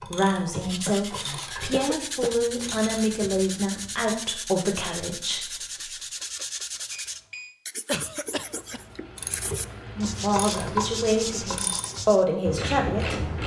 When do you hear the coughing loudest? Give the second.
8 s.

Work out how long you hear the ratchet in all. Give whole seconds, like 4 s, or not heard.
8 s.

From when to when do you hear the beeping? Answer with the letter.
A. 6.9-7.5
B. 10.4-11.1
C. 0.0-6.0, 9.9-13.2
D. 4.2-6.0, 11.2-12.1
A.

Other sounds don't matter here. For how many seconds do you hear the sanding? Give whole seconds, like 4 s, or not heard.
12 s.